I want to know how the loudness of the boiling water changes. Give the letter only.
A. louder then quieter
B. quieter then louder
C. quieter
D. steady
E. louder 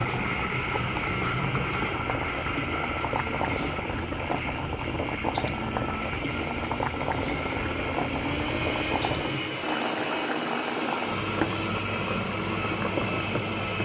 D.